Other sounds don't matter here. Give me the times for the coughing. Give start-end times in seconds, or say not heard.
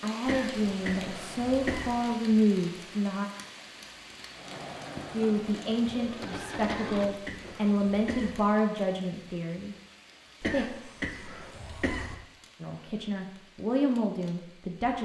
0.2-1.9, 6.7-8.4, 10.4-12.2.